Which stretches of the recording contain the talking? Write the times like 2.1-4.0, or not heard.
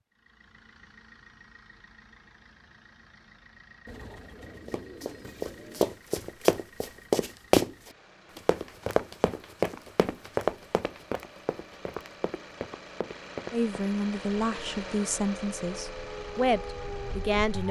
13.5-17.6.